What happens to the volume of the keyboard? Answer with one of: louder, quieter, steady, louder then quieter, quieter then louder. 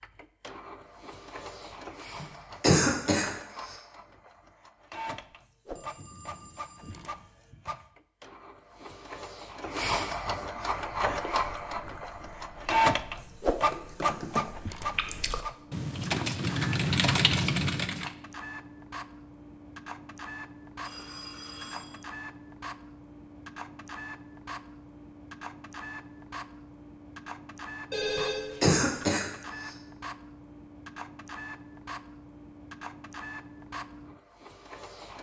quieter then louder.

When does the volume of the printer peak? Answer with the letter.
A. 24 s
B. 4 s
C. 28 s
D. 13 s
D.